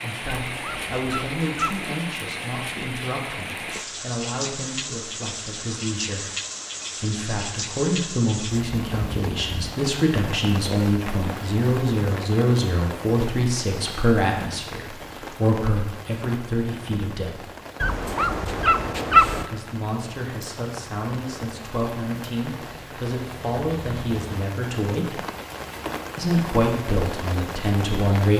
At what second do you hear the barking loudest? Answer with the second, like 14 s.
19 s.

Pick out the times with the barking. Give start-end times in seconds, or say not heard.
0.5-1.8, 17.8-19.4.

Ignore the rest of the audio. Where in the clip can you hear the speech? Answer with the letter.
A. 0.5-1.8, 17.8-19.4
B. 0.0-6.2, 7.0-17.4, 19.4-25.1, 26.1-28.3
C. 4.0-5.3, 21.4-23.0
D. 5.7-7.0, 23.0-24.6
B.